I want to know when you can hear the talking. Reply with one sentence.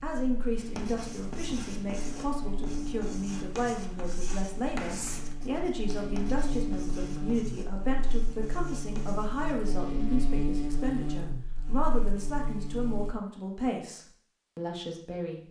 You can hear the talking from 0.0 to 15.4 s.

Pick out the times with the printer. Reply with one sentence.
The printer can't be heard in this clip.